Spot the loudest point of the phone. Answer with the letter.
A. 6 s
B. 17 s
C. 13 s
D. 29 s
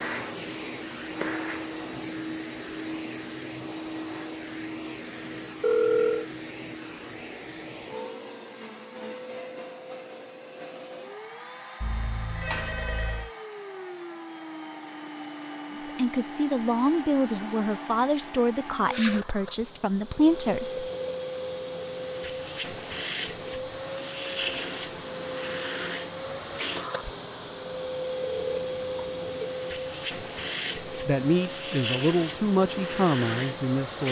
A.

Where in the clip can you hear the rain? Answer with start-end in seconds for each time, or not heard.
not heard.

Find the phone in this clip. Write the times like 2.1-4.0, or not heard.
5.6-6.2, 11.8-13.3, 28.2-29.5.